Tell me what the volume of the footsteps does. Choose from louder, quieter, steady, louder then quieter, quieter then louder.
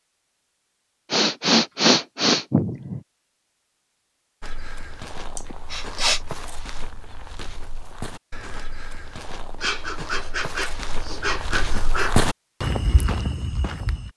louder.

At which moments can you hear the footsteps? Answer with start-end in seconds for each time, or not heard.
4.4-14.1.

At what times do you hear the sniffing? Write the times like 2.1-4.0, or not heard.
1.1-3.0, 5.3-6.2, 9.6-12.2.